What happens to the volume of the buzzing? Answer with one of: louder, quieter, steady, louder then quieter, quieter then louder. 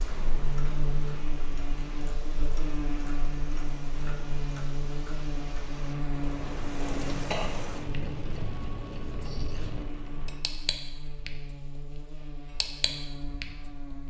quieter.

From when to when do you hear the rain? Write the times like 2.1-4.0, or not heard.
0.0-10.4.